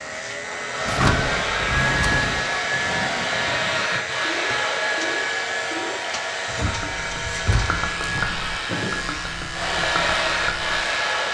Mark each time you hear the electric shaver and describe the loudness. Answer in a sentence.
You can hear the electric shaver from 0.0 to 11.2 s, at a steady volume.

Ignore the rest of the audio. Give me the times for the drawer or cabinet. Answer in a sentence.
The drawer or cabinet can be heard from 0.8 to 2.4 s and from 6.5 to 7.8 s.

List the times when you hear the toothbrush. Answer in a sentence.
You can't hear the toothbrush here.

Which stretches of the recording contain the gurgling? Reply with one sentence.
The gurgling can be heard from 0.8 to 10.8 s.